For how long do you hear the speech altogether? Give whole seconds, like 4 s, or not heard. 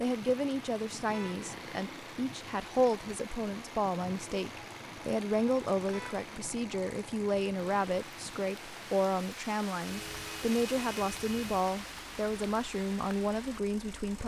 14 s.